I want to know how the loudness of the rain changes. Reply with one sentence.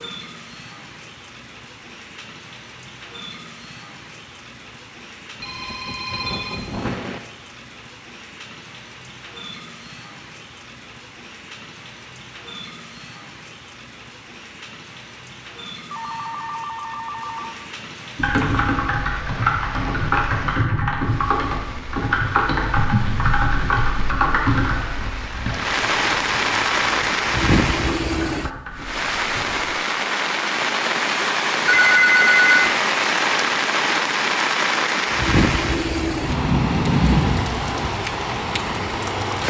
The volume of the rain goes up.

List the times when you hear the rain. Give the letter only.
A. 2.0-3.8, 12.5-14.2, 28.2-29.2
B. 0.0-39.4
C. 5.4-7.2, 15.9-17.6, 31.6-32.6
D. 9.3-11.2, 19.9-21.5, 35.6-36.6
B.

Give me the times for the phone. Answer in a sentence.
You can hear the phone from 5.4 to 7.2 s, from 15.9 to 17.6 s and from 31.6 to 32.6 s.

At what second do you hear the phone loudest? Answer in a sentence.
The loudest moment of the phone is at 32 seconds.